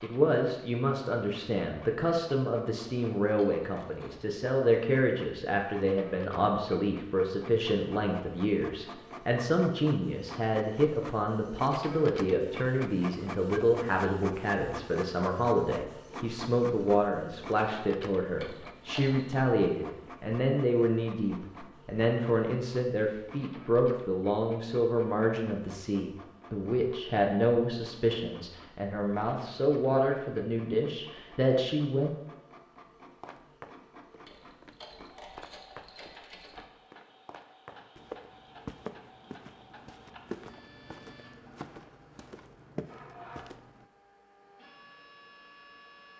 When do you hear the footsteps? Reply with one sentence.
The footsteps can be heard from 33.0 to 43.9 s.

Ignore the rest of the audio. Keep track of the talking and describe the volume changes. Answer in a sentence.
The volume of the talking stays about the same.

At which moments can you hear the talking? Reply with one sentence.
You can hear the talking from 0.0 to 32.1 s.